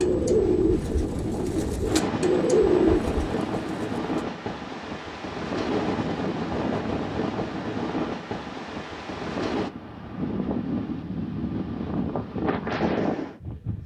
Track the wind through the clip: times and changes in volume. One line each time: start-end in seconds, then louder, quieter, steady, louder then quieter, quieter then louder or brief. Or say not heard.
0.0-13.8 steady.